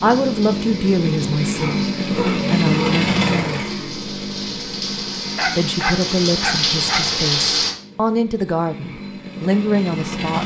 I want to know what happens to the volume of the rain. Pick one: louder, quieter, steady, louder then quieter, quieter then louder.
louder.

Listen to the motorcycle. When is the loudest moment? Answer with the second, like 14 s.
3 s.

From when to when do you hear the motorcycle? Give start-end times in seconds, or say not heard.
0.0-10.4.